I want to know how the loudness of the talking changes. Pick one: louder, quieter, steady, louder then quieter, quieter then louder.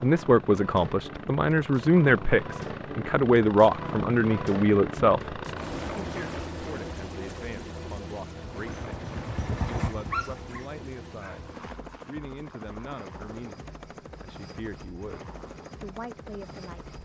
quieter.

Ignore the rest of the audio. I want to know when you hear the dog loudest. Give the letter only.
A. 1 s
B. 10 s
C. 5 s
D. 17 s
B.